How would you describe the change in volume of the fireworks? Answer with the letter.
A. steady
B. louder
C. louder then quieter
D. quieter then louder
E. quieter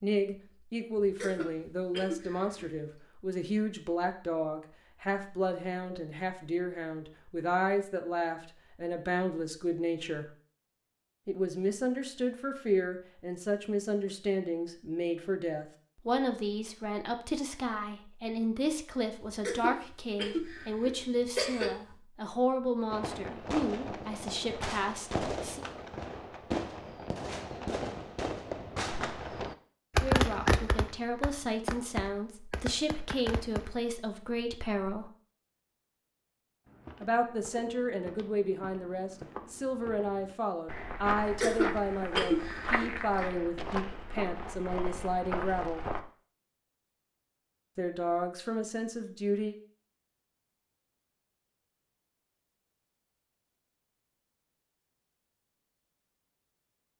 C.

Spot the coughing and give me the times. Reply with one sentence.
You can hear the coughing from 1.0 to 2.7 s, from 19.4 to 21.8 s and from 41.2 to 43.4 s.